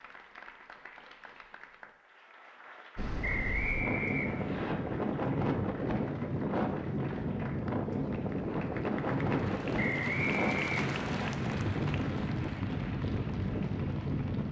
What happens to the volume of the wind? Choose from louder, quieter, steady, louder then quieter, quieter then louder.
steady.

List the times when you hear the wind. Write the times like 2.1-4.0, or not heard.
3.0-14.4.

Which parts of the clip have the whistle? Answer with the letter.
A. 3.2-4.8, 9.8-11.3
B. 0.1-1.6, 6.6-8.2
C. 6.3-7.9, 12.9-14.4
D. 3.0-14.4
A.